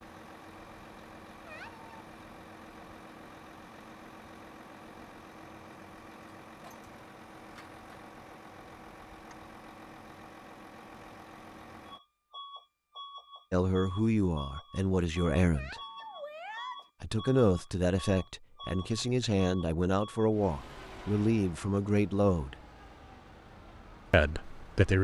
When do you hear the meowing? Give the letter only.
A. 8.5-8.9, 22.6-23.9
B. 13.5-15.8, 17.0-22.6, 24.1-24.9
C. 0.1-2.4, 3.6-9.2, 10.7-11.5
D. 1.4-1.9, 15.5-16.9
D.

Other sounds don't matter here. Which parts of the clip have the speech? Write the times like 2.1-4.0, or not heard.
13.5-15.8, 17.0-22.6, 24.1-24.9.